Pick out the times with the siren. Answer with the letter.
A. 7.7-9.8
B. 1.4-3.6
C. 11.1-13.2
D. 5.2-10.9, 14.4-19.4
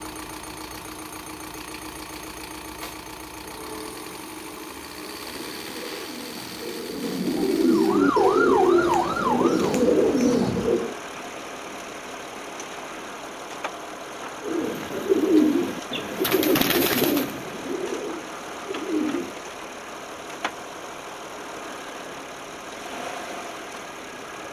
A.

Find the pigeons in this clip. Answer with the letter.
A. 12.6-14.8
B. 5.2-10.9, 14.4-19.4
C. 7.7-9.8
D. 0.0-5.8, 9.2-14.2
B.